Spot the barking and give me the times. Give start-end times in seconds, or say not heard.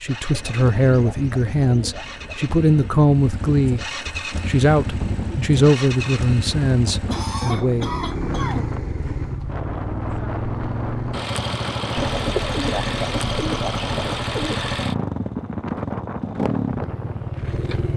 not heard.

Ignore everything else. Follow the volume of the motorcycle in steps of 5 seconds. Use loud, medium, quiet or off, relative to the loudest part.
medium, loud, loud, loud.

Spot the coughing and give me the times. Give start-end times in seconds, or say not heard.
7.0-8.7.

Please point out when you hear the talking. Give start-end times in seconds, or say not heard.
0.0-7.9.